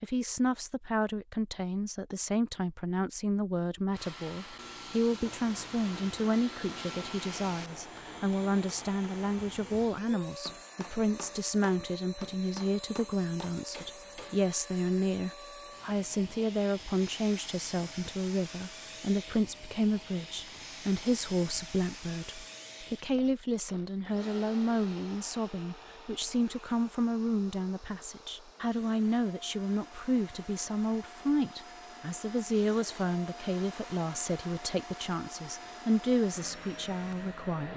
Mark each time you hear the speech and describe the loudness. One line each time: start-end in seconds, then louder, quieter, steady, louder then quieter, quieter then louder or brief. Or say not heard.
0.0-37.7 steady.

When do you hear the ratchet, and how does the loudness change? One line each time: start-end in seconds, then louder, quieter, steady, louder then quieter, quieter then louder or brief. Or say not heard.
not heard.